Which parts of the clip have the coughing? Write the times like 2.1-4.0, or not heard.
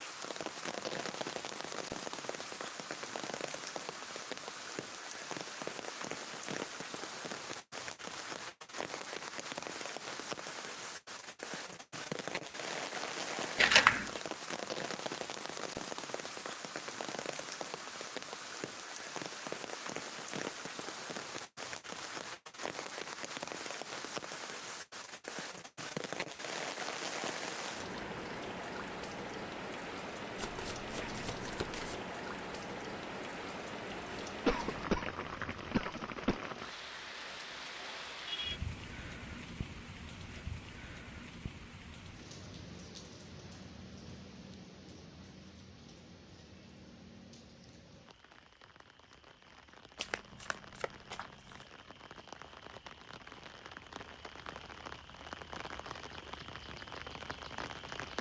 34.5-36.4.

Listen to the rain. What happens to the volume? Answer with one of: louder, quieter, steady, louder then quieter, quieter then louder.
quieter.